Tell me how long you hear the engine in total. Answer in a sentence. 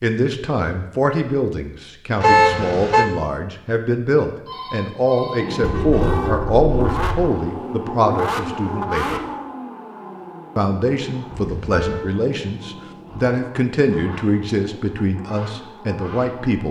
You can hear the engine for 11 seconds altogether.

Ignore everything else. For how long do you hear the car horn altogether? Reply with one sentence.
You can hear the car horn for 3 seconds altogether.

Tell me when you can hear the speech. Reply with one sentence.
The speech can be heard from 0.0 to 9.2 s and from 10.6 to 16.6 s.